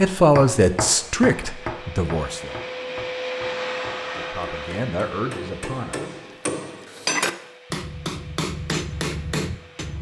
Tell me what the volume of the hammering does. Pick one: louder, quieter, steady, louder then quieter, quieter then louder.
quieter then louder.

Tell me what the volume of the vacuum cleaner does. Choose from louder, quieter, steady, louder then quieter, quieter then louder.
louder then quieter.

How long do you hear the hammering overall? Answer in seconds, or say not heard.
10 s.